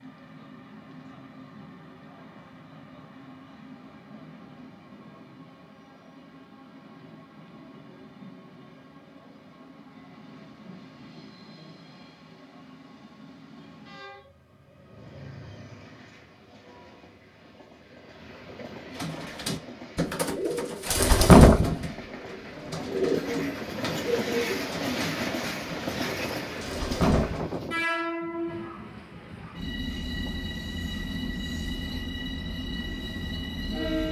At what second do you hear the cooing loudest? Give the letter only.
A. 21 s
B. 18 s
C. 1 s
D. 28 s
A.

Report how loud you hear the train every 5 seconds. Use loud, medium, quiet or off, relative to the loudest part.
quiet, quiet, quiet, quiet, loud, loud, loud.